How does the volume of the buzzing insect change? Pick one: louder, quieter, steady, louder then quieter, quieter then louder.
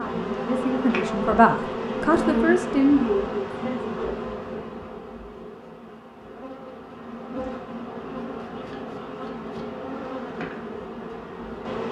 quieter then louder.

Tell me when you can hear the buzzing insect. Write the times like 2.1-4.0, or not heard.
0.0-11.8.